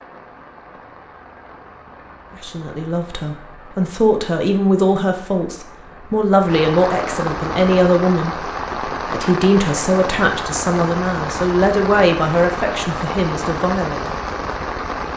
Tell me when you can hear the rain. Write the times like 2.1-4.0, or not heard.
0.0-15.1.